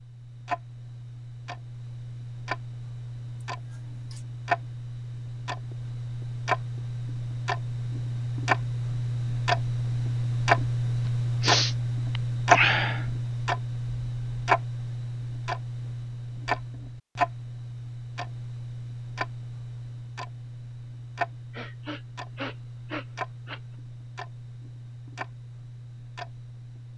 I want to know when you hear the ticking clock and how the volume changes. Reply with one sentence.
You can hear the ticking clock from 0.0 to 26.9 s, getting louder then quieter.